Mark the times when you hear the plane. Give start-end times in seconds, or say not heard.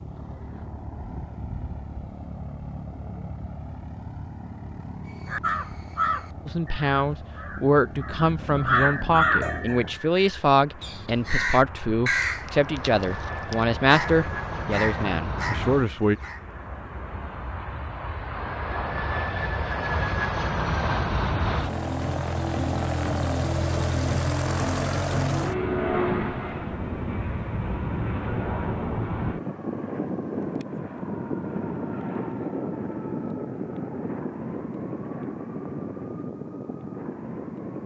0.0-37.8.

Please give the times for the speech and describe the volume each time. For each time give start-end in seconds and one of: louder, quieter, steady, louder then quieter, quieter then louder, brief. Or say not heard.
6.5-16.1 steady.